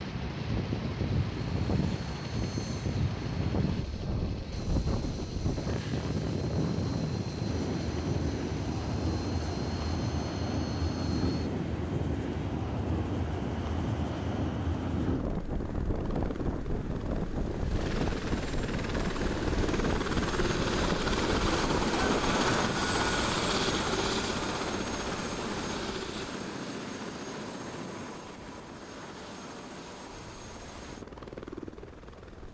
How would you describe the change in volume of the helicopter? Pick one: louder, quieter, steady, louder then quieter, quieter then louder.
louder then quieter.